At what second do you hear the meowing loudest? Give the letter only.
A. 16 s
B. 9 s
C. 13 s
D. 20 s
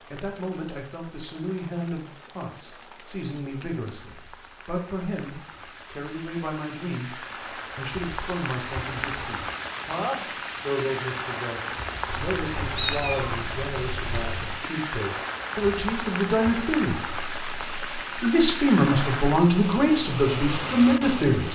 C.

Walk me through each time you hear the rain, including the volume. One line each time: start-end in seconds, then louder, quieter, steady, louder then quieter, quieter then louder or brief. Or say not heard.
0.0-21.5 louder.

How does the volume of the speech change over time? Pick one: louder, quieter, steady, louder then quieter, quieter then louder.
louder.